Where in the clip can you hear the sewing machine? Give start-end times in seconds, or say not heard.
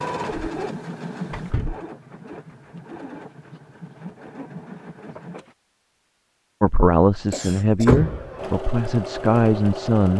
0.0-5.5, 8.3-10.1.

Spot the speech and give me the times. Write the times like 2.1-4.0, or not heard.
6.6-10.1.